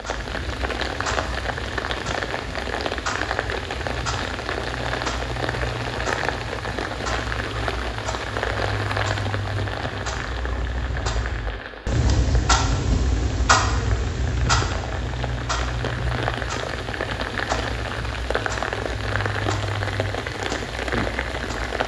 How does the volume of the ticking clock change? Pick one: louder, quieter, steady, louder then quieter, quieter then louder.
louder then quieter.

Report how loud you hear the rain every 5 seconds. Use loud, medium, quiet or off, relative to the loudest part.
loud, loud, medium, loud, loud.